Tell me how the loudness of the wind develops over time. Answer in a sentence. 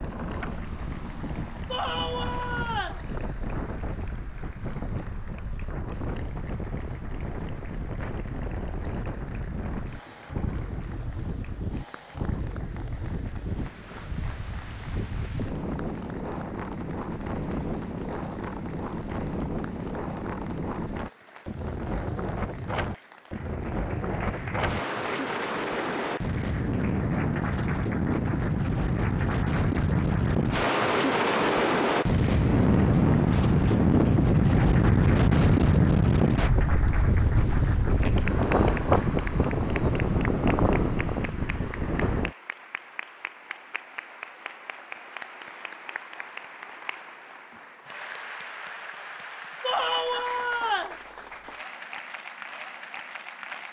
The loudness of the wind goes up.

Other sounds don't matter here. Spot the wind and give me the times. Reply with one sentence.
You can hear the wind from 0.0 to 42.4 s.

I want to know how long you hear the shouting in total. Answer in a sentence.
The shouting can be heard for 3 seconds in total.